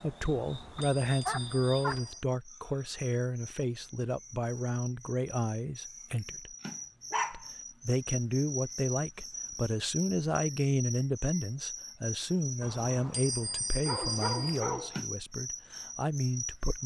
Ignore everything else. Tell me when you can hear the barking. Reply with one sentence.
The barking can be heard from 0.8 to 2.0 s, from 6.7 to 7.5 s and from 13.8 to 14.9 s.